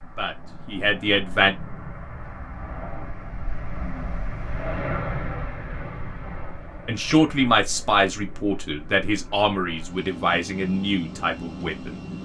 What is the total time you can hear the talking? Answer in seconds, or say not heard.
7 s.